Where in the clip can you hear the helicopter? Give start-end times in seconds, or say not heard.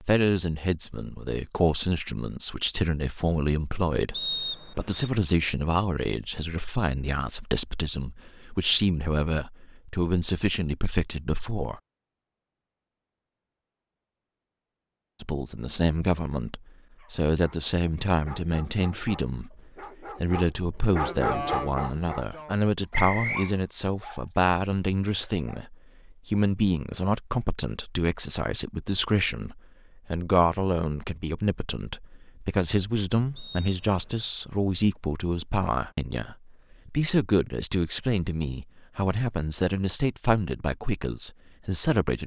not heard.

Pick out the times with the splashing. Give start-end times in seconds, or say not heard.
not heard.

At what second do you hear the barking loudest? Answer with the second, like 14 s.
21 s.